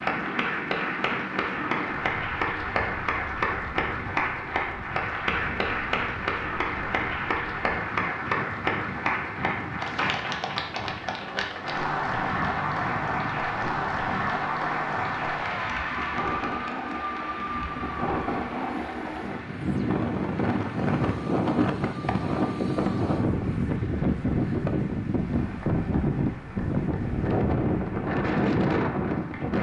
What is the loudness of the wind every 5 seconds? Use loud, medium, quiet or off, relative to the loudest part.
quiet, quiet, quiet, medium, loud, loud.